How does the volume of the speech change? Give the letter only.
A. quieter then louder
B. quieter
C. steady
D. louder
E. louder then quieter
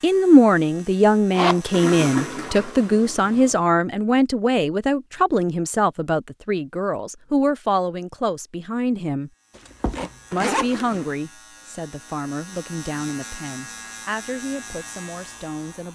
B.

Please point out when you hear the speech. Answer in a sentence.
You can hear the speech from 0.0 to 9.3 s and from 10.3 to 15.9 s.